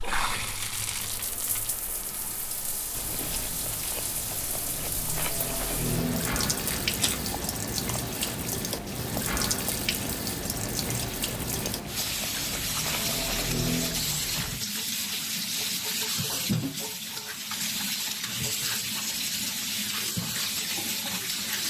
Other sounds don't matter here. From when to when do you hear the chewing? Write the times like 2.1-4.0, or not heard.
2.9-14.6.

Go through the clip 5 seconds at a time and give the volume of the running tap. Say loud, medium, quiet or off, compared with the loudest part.
medium, loud, loud, loud, loud.